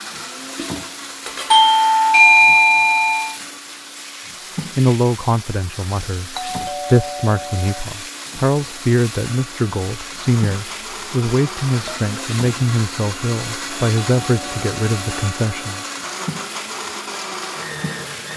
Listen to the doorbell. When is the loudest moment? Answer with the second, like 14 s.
2 s.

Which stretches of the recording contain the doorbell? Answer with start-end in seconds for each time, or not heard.
1.5-3.4, 6.3-7.8, 14.1-15.8.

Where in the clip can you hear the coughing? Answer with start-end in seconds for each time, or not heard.
not heard.